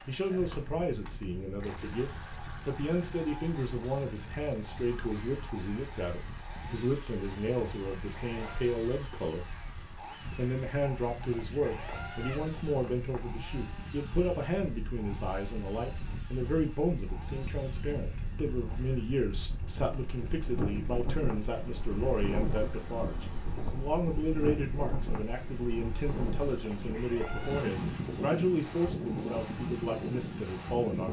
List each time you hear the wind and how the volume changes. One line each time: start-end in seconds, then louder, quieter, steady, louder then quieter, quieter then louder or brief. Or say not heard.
0.1-31.0 louder.